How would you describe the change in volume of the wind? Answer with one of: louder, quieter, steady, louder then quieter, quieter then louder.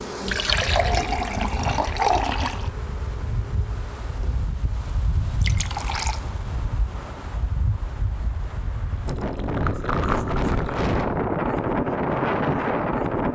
louder.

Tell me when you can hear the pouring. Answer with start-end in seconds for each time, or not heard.
0.2-2.7, 5.4-6.2, 9.1-10.8.